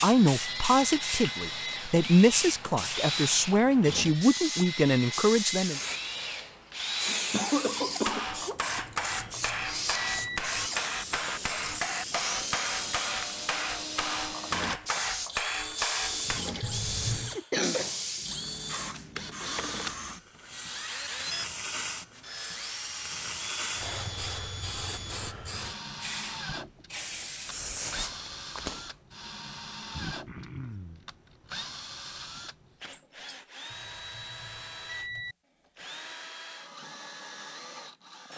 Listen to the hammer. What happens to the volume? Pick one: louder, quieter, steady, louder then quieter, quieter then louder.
steady.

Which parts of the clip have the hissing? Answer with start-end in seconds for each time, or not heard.
0.0-28.9.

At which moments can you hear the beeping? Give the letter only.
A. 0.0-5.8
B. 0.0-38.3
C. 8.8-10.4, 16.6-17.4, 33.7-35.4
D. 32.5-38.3
C.